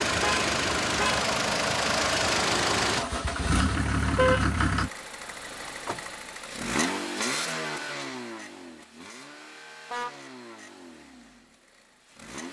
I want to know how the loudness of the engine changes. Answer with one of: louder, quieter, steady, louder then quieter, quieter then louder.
quieter.